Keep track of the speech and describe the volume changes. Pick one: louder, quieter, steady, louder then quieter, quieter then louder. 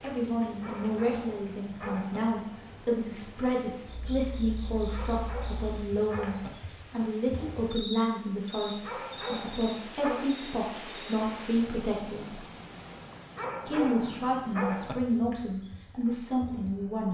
steady.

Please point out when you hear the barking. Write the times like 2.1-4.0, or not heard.
0.6-2.2, 4.9-6.5, 8.8-10.3, 13.3-14.9.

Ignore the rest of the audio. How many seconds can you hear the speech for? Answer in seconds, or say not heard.
16 s.